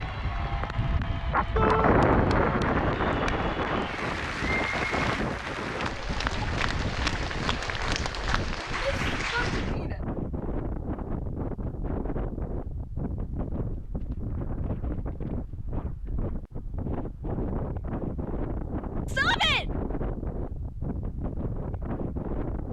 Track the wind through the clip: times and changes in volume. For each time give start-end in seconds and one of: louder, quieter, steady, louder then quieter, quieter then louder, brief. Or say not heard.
0.0-22.6 quieter.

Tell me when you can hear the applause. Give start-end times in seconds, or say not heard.
0.0-9.8.